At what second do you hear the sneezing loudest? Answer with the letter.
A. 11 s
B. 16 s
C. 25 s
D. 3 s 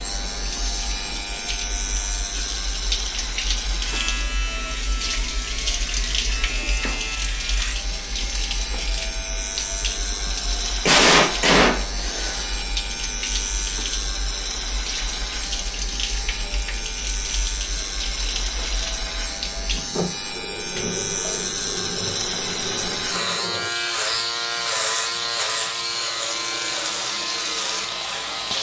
A.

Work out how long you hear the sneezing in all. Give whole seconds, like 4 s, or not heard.
2 s.